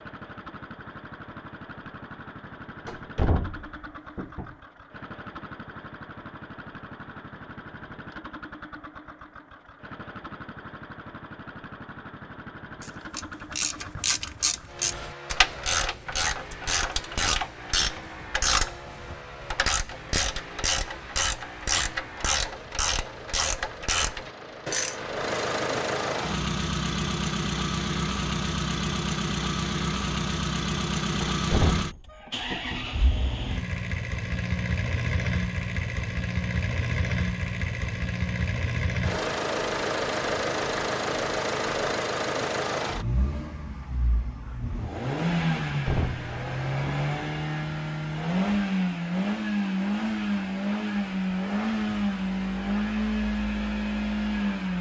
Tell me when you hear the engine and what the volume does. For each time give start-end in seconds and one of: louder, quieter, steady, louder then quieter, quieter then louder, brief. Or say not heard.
0.0-54.7 louder.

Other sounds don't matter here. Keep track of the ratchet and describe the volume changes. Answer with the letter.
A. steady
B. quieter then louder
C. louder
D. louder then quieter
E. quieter
A.